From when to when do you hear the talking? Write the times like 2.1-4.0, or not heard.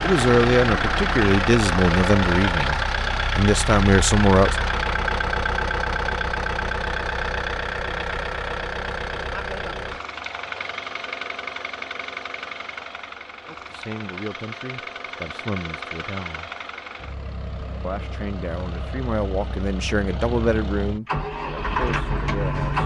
0.0-4.5, 13.4-16.5, 17.9-22.8.